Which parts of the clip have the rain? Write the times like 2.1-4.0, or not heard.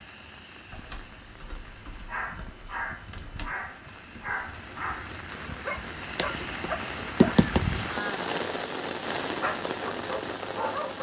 0.0-10.9.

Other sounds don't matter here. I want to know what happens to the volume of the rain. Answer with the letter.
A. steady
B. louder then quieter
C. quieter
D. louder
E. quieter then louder
D.